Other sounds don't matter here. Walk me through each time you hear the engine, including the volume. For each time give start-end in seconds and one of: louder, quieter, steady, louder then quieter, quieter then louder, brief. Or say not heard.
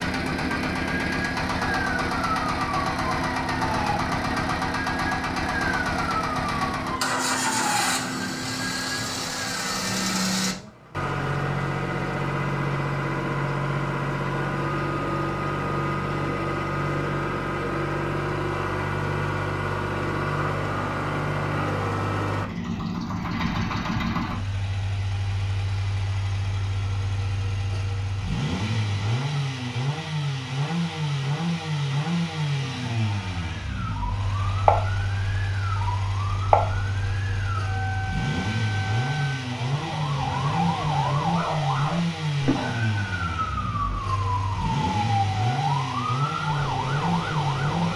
0.0-47.9 steady.